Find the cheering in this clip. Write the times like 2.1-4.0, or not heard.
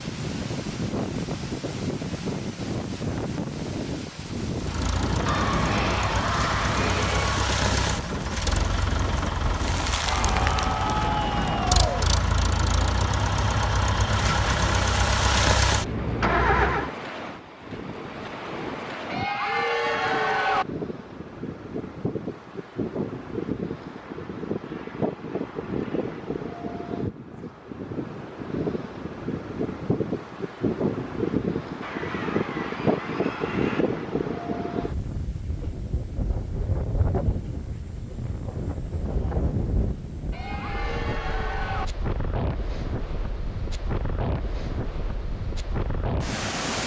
5.2-7.5, 10.1-12.1, 19.1-20.6, 31.8-33.9, 40.3-41.9.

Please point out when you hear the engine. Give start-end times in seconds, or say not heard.
4.5-16.9.